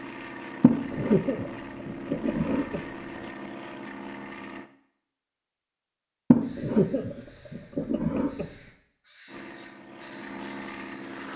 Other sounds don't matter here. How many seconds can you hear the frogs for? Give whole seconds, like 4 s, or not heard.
not heard.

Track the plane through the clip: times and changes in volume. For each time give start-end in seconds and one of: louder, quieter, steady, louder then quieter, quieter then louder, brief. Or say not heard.
0.0-4.7 steady
9.2-11.3 brief.